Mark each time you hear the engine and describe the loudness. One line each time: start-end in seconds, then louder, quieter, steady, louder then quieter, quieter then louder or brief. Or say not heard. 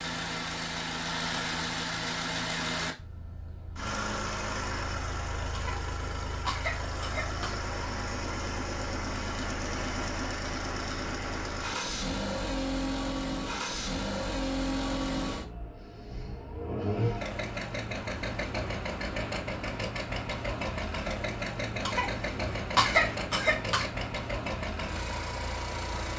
0.0-26.1 steady.